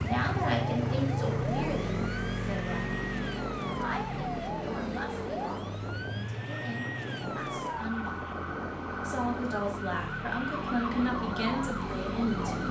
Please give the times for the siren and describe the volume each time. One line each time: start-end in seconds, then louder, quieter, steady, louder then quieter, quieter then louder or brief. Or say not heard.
0.0-12.6 steady.